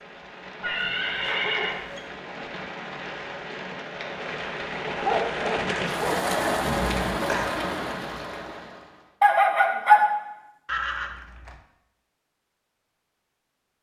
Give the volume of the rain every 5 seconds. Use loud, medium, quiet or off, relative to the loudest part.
medium, loud, off.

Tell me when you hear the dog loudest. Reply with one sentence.
The loudest moment of the dog is at 10 seconds.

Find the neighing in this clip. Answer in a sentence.
You can hear the neighing from 0.6 to 1.8 s, from 5.5 to 7.5 s and from 10.7 to 11.6 s.